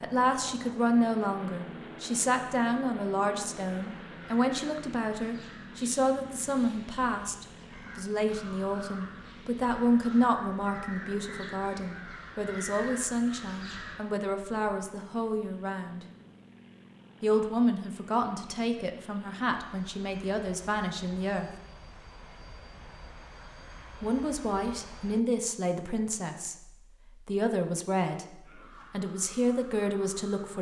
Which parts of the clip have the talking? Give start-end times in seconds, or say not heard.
0.0-16.1, 17.2-21.5, 24.0-26.6, 27.2-30.5.